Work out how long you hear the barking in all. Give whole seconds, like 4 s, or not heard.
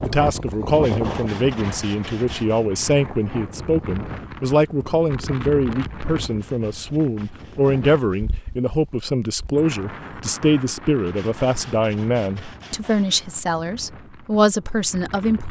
not heard.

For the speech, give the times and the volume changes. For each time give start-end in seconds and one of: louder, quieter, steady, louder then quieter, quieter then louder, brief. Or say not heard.
0.0-15.4 steady.